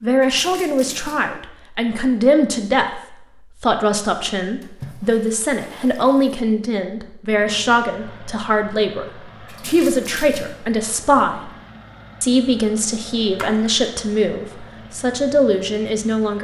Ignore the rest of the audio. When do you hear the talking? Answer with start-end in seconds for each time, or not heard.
0.0-3.0, 3.6-11.5, 12.2-16.3.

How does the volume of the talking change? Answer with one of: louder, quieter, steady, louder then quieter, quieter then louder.
steady.